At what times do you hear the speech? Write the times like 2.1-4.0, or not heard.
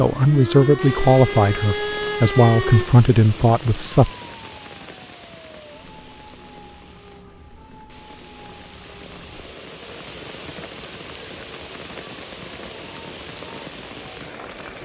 0.0-4.1.